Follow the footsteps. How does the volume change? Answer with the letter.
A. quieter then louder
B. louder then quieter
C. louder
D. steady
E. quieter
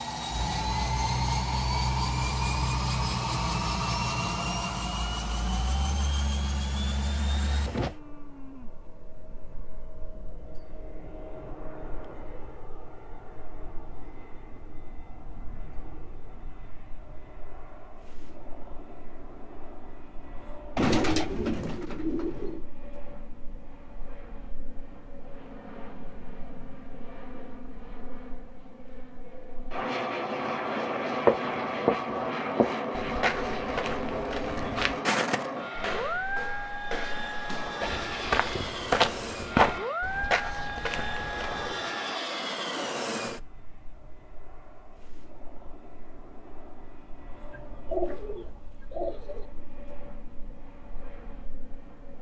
A.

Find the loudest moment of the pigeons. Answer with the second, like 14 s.
21 s.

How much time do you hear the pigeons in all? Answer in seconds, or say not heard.
4 s.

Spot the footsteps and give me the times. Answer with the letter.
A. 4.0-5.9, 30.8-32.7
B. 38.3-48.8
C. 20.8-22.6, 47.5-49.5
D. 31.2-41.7
D.